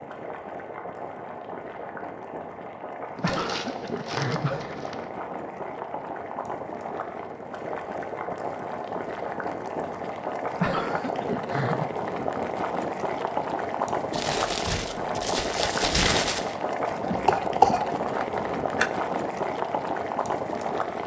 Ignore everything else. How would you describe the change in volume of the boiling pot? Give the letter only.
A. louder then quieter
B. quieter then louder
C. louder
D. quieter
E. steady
C.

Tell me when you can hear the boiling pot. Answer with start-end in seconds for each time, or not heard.
0.0-21.0.